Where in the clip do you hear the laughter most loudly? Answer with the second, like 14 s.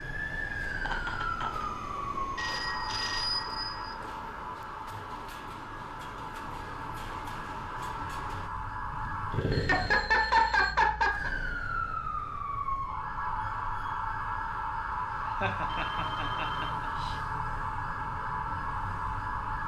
10 s.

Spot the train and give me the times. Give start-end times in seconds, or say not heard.
0.0-8.5.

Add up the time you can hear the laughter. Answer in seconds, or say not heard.
5 s.